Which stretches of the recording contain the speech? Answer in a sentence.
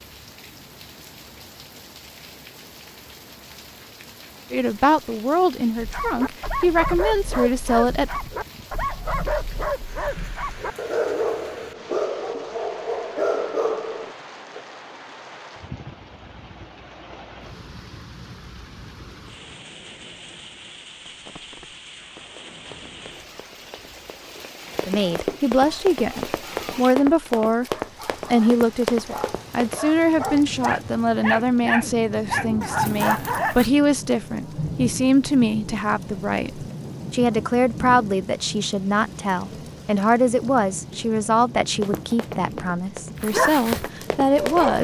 The speech can be heard from 4.5 to 8.2 s, from 24.9 to 27.6 s and from 28.3 to 44.7 s.